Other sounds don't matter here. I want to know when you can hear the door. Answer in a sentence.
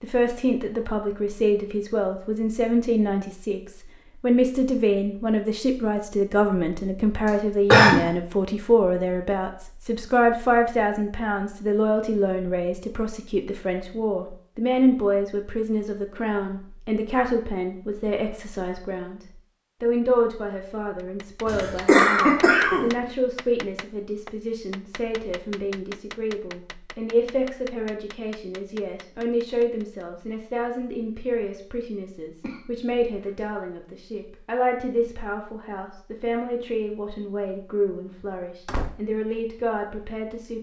You can hear the door from 38.2 to 39.0 s.